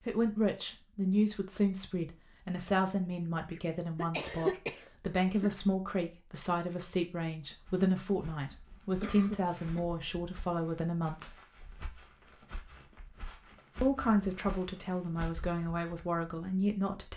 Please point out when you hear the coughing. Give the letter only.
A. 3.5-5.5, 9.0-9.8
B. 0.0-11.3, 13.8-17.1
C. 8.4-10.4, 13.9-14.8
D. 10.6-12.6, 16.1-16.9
A.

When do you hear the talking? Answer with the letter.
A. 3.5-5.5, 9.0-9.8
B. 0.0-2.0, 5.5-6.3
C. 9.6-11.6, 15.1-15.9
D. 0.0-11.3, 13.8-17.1
D.